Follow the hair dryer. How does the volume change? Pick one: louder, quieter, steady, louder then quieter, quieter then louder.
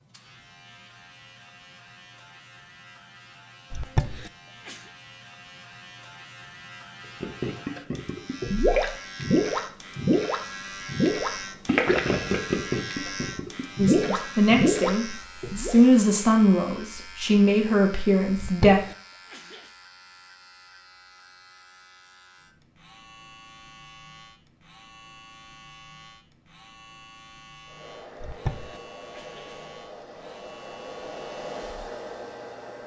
louder.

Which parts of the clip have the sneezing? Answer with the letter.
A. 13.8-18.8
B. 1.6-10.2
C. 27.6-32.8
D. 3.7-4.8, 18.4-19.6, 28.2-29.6
D.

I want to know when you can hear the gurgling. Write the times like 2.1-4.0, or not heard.
7.2-15.8.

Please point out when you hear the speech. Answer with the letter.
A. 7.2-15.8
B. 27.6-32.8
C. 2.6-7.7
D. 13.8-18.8
D.